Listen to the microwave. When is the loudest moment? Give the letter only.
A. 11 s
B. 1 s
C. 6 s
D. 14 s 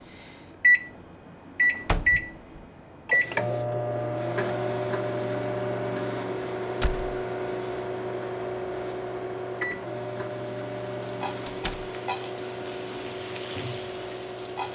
B.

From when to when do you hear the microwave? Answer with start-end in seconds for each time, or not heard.
0.1-14.6.